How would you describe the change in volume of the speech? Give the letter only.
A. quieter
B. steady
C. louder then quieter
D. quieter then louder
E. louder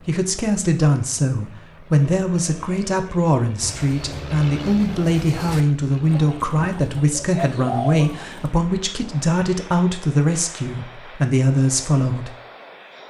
B.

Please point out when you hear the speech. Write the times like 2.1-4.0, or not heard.
0.1-12.3.